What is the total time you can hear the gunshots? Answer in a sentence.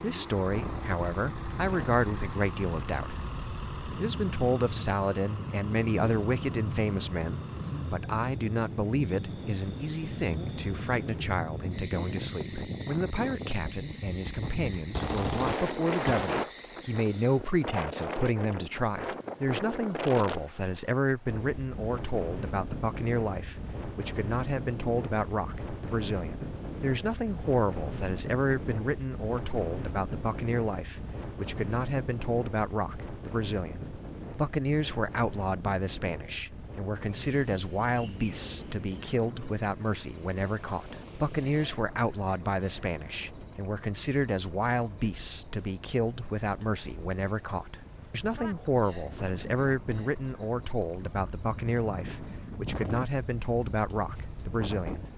The gunshots can be heard for 2 seconds in total.